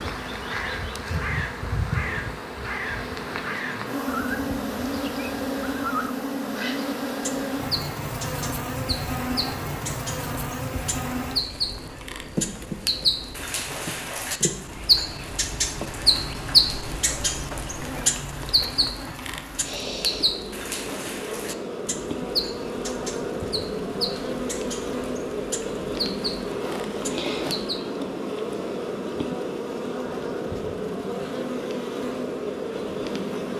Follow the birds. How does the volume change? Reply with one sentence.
The loudness of the birds goes up, then down.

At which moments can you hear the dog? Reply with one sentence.
The dog can't be heard in this clip.